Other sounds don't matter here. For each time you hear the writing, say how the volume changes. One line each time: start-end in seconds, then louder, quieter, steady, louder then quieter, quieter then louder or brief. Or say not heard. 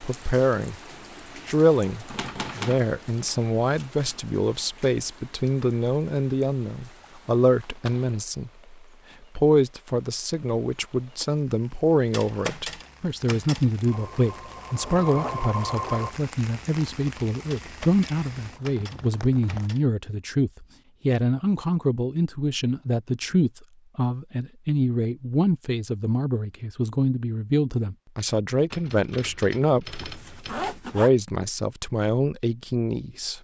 not heard.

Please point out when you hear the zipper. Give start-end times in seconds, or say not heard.
7.6-8.2, 29.9-31.1.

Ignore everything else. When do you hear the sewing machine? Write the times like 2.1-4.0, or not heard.
13.8-16.1.